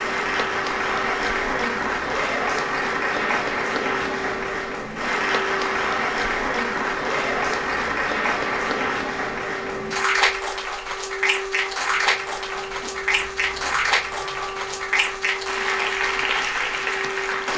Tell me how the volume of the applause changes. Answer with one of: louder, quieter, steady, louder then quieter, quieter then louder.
steady.